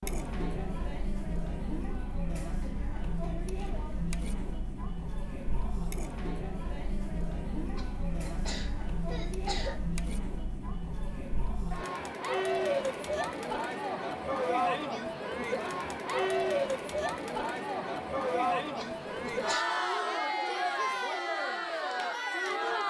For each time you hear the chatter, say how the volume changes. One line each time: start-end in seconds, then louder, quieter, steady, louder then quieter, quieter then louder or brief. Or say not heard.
0.0-22.8 louder.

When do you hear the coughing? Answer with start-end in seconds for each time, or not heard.
7.8-9.8, 18.8-19.6.